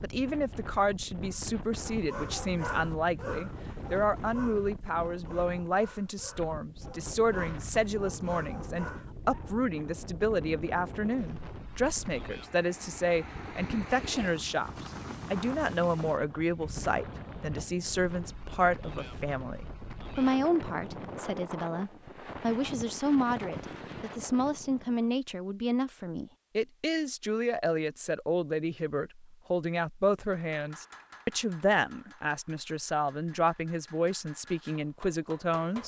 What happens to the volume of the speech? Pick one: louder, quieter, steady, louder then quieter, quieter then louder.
steady.